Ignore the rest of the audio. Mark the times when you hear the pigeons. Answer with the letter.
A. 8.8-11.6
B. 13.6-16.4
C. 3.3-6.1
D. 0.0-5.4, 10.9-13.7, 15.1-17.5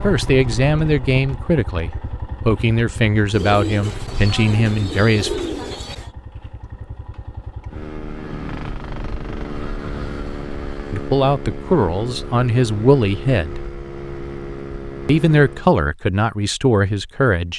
C.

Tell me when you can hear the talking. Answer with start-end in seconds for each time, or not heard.
0.0-5.4, 10.9-13.7, 15.1-17.5.